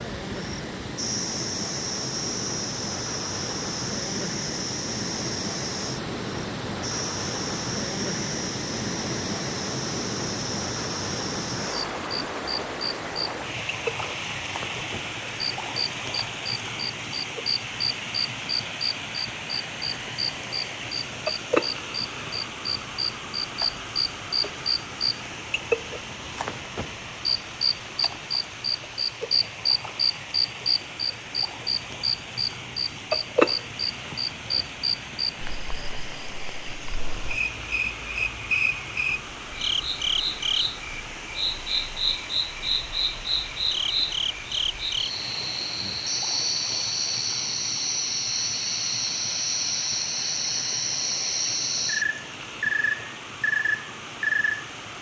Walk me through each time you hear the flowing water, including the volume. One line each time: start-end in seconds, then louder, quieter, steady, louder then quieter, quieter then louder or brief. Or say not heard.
0.0-54.9 quieter.